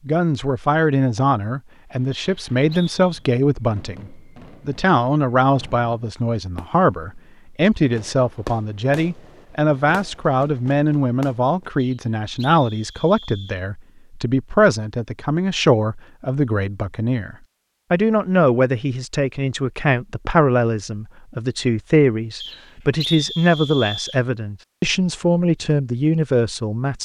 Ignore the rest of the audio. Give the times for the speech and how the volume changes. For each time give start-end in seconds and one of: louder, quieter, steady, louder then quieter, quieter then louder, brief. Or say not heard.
0.1-27.0 steady.